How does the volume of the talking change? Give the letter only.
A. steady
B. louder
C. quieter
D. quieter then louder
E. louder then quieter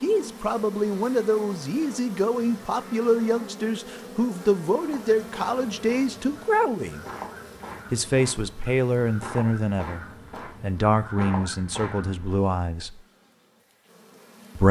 A.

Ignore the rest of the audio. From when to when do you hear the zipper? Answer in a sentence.
The zipper can't be heard in this clip.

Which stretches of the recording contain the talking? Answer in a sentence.
You can hear the talking from 0.0 to 7.0 s and from 7.9 to 13.0 s.